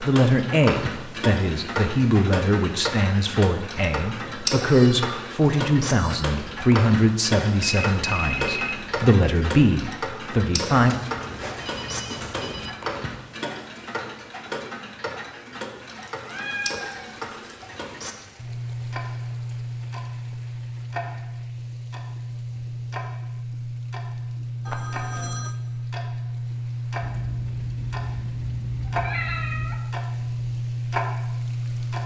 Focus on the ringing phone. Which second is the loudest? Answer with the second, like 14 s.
8 s.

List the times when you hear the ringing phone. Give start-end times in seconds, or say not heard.
7.6-9.1, 10.7-12.7, 24.6-25.6.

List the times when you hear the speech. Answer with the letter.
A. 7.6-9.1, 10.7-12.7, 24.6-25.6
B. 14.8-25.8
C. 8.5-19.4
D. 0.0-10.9
D.